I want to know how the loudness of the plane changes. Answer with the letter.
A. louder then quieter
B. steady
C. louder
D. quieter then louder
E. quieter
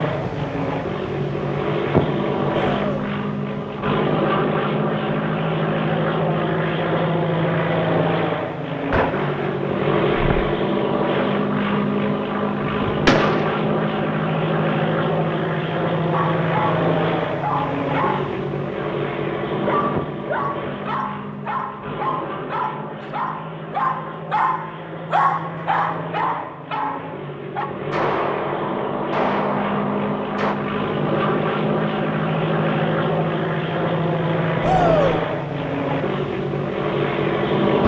D.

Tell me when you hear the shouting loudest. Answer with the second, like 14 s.
35 s.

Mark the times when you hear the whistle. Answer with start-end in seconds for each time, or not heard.
not heard.